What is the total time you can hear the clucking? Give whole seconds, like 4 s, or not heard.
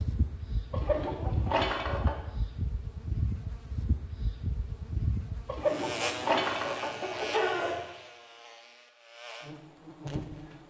4 s.